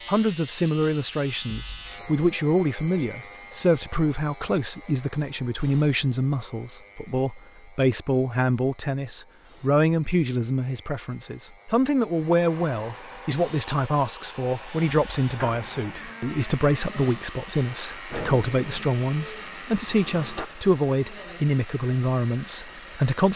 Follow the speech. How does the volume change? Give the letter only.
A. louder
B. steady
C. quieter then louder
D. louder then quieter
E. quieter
B.